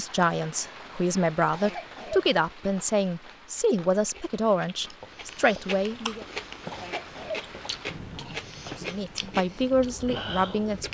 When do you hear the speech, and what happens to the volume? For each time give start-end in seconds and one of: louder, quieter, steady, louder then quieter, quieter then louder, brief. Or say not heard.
0.0-6.2 steady
8.8-10.8 brief.